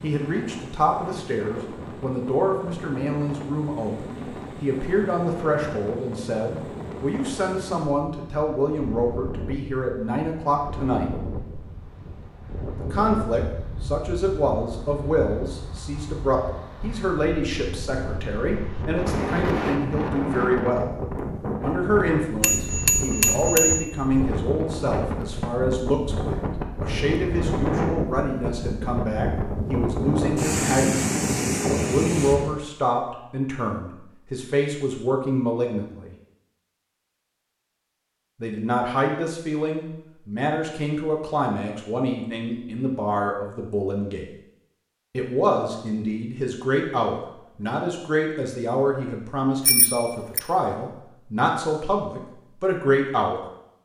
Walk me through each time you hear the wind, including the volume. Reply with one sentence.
The wind can be heard from 0.0 to 32.6 s, getting louder.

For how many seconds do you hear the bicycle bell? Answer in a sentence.
You can hear the bicycle bell for 2 seconds altogether.